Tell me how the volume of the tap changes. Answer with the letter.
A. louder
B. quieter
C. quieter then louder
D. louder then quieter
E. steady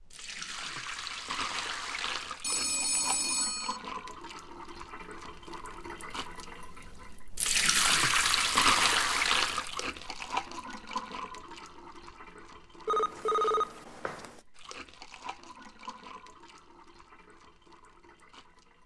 D.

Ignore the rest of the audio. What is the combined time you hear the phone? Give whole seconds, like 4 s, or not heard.
3 s.